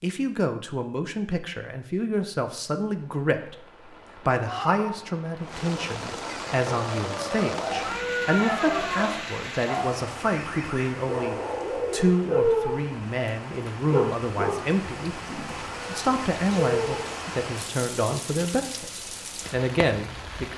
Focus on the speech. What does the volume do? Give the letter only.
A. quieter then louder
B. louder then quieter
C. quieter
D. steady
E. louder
D.